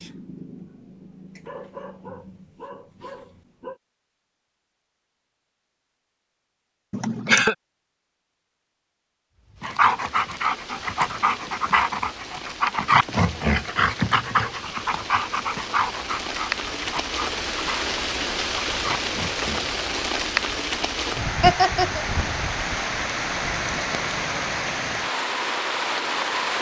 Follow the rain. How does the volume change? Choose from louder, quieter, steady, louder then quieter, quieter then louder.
louder.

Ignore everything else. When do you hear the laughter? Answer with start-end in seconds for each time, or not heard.
6.9-7.5, 21.4-22.1.